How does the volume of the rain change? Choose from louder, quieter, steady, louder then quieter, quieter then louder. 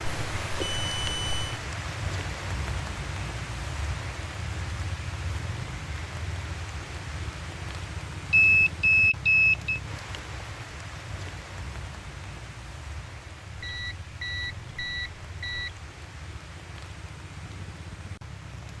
quieter.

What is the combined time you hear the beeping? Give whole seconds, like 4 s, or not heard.
5 s.